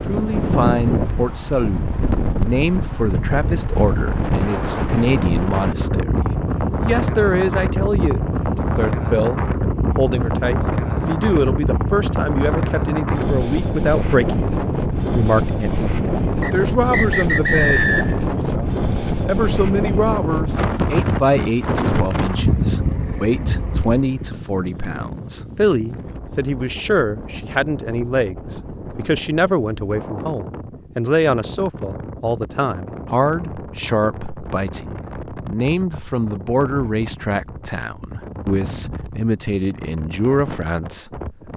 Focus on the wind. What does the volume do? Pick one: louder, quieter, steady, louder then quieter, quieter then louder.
quieter.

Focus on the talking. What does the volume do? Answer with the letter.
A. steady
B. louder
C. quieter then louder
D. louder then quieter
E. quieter
A.